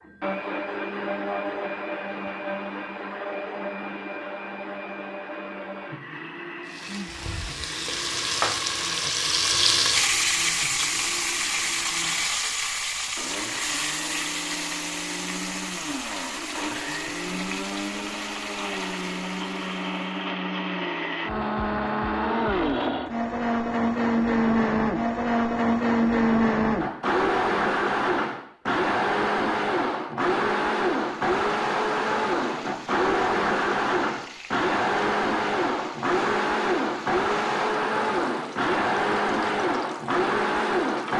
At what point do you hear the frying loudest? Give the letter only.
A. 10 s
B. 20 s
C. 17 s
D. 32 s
A.